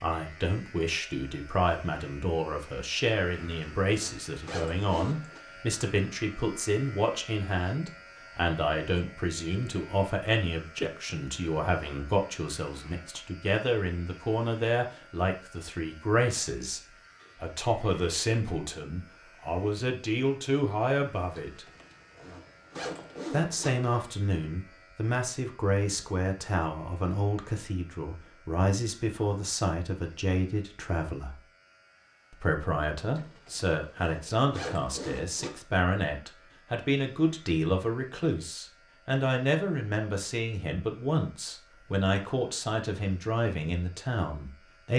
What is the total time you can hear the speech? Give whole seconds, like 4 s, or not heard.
42 s.